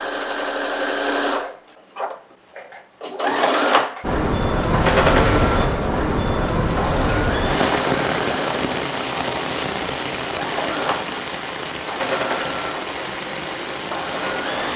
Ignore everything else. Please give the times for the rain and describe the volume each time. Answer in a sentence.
The rain can be heard from 4.0 to 14.7 s, getting quieter.